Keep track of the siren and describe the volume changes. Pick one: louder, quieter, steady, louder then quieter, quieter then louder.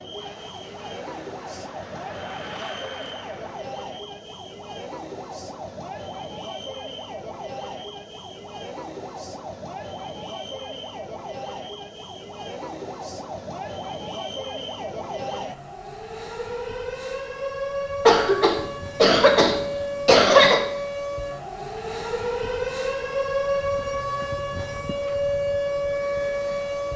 louder.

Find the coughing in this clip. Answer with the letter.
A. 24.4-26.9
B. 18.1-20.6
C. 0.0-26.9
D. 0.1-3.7
B.